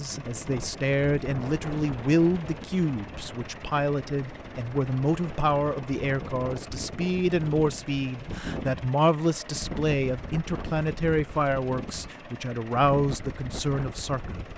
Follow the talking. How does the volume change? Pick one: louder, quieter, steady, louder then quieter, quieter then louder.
steady.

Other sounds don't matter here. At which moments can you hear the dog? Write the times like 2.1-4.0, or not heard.
not heard.